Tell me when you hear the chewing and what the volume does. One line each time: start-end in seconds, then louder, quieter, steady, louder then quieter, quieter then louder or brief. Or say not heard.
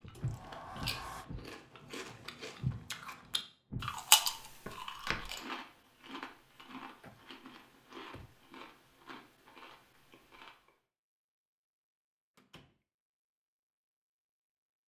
0.1-10.6 louder then quieter.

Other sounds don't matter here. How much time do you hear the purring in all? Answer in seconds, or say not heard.
not heard.